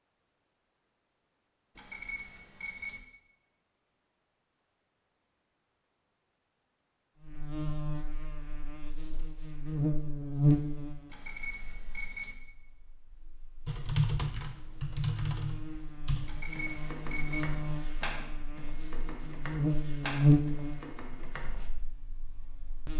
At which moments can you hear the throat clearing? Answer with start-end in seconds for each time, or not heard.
not heard.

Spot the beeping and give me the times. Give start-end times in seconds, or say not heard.
1.8-3.0, 11.1-12.3, 16.2-17.5.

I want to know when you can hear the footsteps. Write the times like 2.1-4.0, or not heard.
not heard.